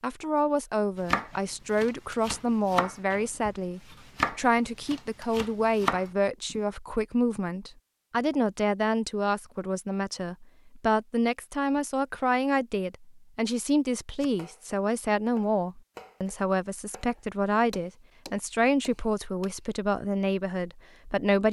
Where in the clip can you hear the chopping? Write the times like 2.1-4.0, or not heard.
0.9-6.6, 14.2-19.6.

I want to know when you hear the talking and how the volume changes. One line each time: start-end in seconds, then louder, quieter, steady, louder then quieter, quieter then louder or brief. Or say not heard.
0.0-21.4 steady.